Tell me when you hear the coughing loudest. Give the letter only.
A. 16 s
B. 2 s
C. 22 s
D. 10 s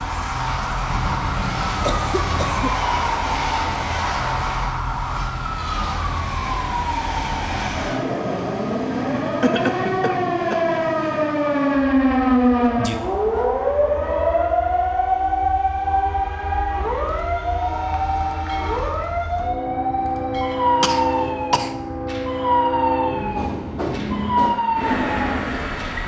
D.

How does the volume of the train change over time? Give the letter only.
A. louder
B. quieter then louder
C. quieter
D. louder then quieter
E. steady
B.